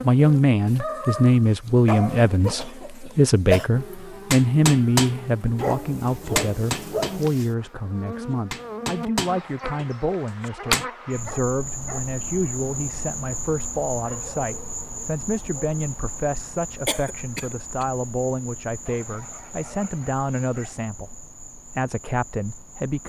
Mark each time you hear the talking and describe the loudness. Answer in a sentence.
You can hear the talking from 0.0 to 23.0 s, getting quieter.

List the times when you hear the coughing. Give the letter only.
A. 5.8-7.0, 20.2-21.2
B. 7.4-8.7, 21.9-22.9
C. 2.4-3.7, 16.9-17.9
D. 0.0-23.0
C.